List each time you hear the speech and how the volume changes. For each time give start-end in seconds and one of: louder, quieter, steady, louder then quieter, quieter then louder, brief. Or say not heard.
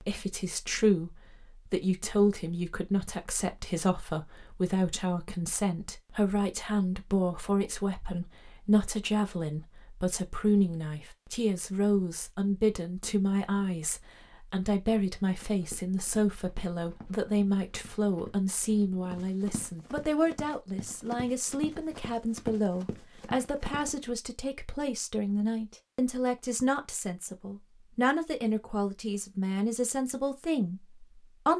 0.0-31.5 steady.